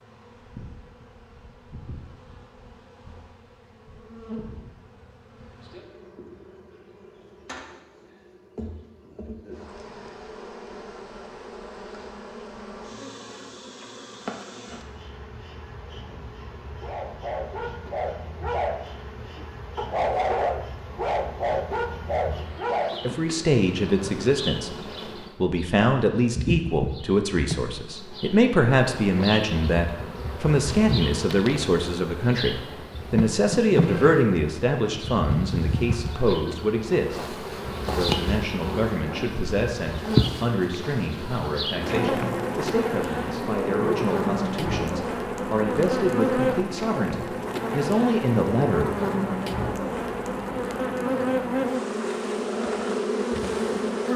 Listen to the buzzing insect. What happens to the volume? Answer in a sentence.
The volume of the buzzing insect goes up.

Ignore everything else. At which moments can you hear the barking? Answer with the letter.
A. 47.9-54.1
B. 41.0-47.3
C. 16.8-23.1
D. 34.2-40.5
C.